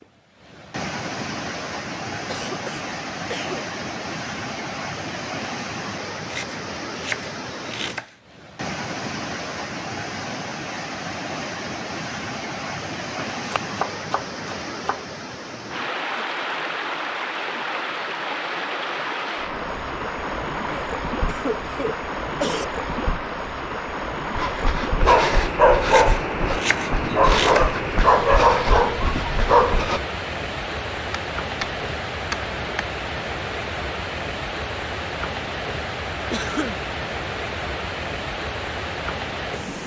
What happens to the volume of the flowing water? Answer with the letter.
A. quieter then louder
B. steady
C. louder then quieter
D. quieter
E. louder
B.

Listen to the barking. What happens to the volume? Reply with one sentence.
The loudness of the barking stays about the same.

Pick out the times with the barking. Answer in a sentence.
You can hear the barking from 24.4 to 30.0 s.